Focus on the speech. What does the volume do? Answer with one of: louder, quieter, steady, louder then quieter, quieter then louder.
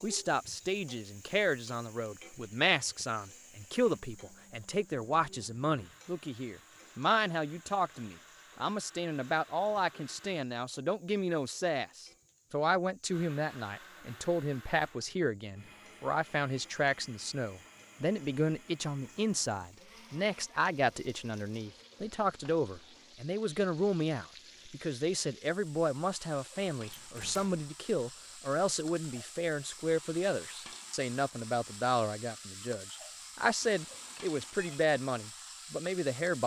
steady.